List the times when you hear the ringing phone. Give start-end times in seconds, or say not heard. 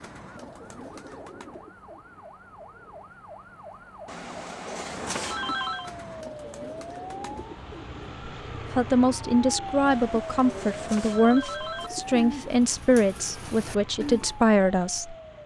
4.0-5.9, 9.9-11.9.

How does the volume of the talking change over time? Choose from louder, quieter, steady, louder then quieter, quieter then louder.
steady.